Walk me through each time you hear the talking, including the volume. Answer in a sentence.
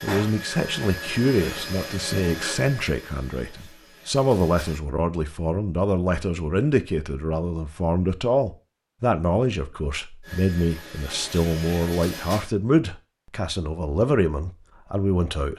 You can hear the talking from 0.0 to 15.5 s, at a steady volume.